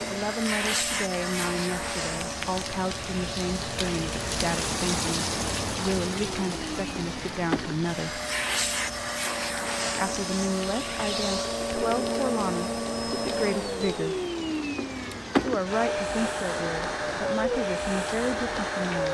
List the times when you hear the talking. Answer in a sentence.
You can hear the talking from 0.1 to 8.2 s, from 9.9 to 14.2 s and from 15.4 to 19.0 s.